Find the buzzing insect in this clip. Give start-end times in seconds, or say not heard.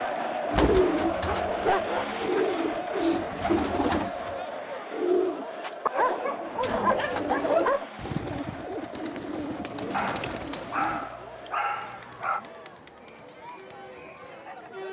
not heard.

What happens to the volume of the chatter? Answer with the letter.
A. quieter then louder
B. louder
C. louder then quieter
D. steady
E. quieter
E.